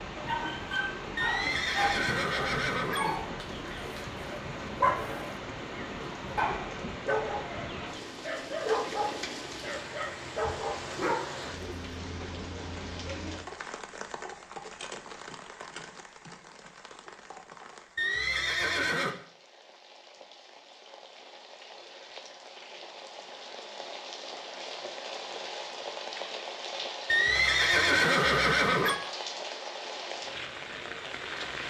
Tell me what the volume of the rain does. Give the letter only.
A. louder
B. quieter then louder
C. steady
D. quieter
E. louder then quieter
B.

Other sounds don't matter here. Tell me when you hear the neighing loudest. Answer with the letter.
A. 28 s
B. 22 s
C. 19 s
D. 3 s
A.